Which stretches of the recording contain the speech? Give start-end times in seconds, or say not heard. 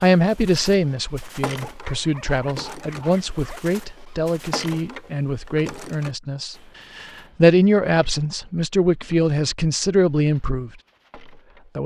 0.0-10.7.